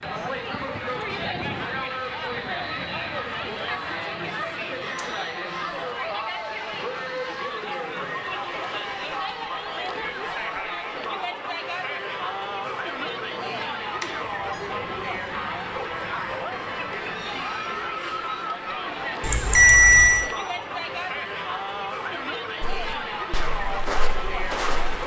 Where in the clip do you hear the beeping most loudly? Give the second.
20 s.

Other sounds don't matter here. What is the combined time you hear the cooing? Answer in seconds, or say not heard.
not heard.